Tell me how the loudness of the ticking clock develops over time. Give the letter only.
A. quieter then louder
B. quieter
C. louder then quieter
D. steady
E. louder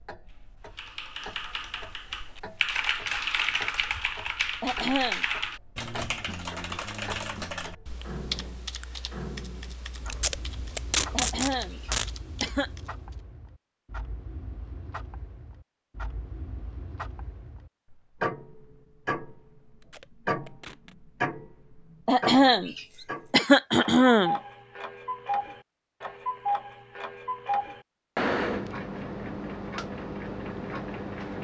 E.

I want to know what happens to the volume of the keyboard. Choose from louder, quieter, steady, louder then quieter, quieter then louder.
quieter.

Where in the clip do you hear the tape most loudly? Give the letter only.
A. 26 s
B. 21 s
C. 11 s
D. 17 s
C.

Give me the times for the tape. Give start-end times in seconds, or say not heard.
10.1-12.1, 19.8-20.9.